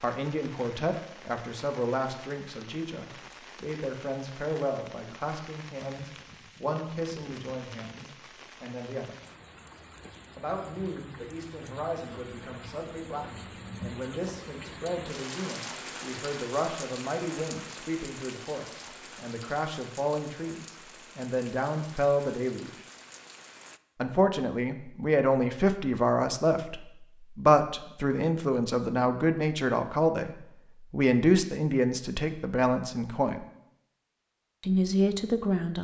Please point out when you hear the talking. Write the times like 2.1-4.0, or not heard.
0.0-9.2, 10.3-22.7, 24.0-33.5, 34.6-35.7.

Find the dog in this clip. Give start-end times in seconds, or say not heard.
not heard.